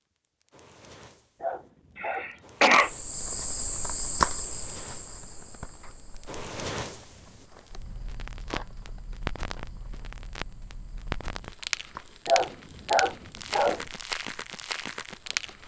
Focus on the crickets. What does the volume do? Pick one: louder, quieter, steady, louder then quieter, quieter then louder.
quieter.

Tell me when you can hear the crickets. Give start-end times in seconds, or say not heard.
2.8-15.6.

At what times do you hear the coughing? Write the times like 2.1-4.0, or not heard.
1.9-2.9.